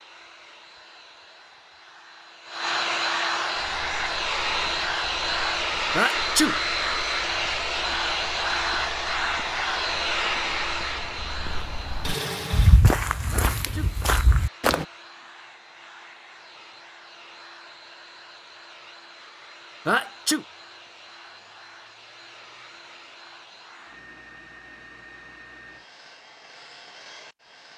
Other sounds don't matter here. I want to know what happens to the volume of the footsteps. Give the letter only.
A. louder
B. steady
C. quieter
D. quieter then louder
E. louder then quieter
A.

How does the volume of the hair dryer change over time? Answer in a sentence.
The volume of the hair dryer goes down.